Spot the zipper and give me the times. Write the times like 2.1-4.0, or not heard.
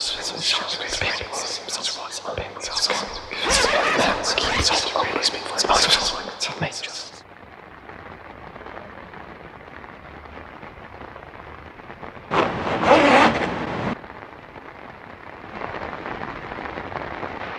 3.4-5.2, 12.3-13.9.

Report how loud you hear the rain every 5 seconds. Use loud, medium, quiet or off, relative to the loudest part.
off, medium, medium, loud.